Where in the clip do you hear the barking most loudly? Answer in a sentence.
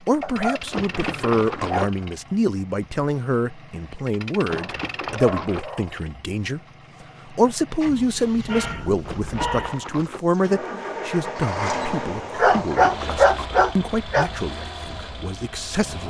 The loudest moment of the barking is at 13 seconds.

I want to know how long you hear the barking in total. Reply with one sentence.
You can hear the barking for 7 seconds altogether.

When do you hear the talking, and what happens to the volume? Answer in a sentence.
You can hear the talking from 0.1 to 6.6 s, at a steady volume; and from 7.2 to 16.0 s, getting quieter.